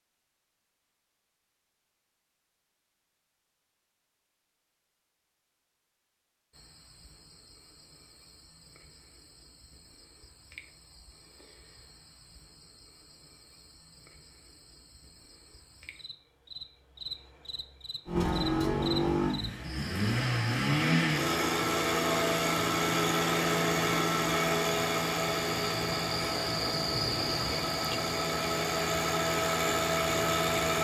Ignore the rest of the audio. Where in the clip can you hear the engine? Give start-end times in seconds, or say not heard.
18.1-30.7.